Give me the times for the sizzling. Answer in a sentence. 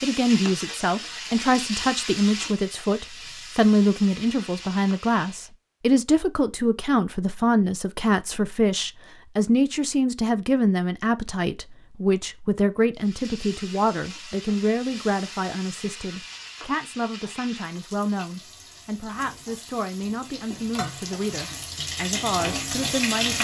You can hear the sizzling from 0.0 to 5.5 s and from 12.9 to 23.3 s.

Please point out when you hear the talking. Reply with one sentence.
The talking can be heard from 0.0 to 23.3 s.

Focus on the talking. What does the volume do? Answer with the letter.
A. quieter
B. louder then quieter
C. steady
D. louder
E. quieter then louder
A.